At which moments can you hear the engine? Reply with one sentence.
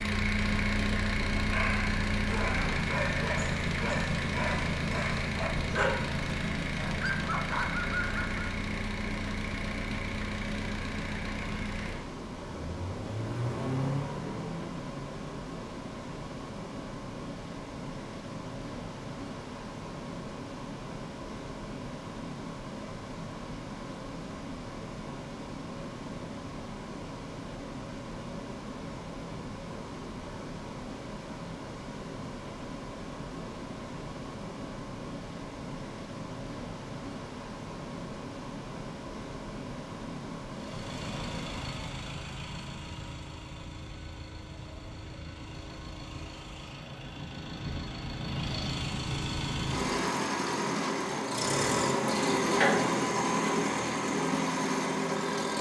You can hear the engine from 0.0 to 15.3 s and from 40.5 to 55.5 s.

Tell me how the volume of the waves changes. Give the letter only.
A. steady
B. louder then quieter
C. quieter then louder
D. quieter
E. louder
A.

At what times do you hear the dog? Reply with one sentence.
The dog can be heard from 1.4 to 8.4 s.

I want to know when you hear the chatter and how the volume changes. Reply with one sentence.
You can't hear the chatter here.